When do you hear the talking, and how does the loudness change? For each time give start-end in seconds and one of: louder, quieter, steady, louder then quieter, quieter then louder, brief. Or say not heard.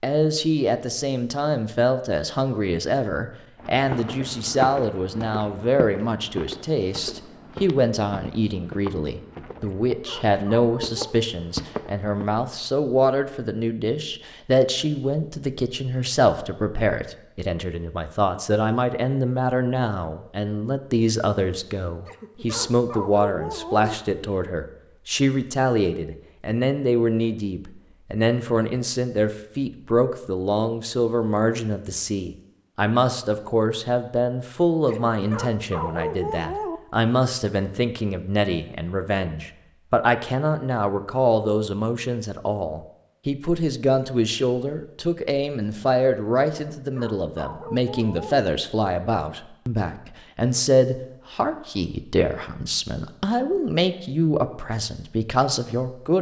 0.0-56.1 steady.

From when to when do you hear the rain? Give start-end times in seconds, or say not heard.
not heard.